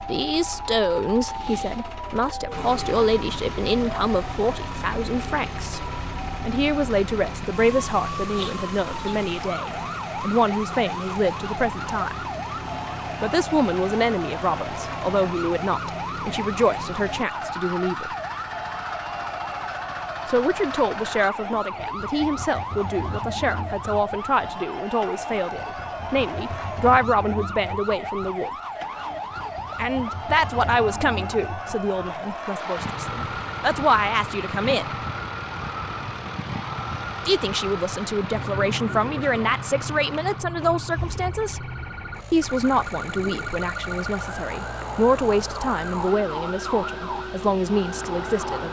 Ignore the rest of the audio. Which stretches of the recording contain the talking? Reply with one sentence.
The talking can be heard from 0.1 to 12.2 s, from 13.2 to 18.1 s, from 20.2 to 28.5 s, from 29.8 to 35.0 s, from 37.2 to 41.6 s and from 42.3 to 48.6 s.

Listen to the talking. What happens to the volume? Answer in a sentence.
The loudness of the talking stays about the same.